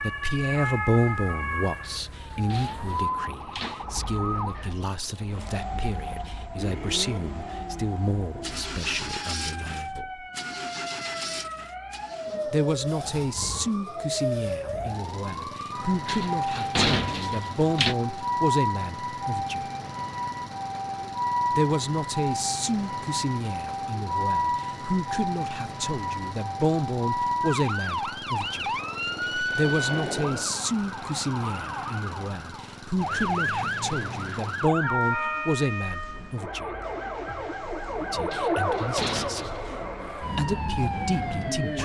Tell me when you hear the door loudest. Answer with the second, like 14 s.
17 s.